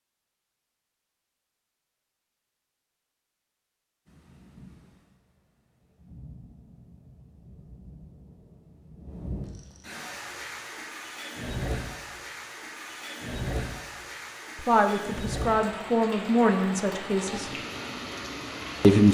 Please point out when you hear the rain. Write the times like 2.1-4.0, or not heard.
4.0-19.0.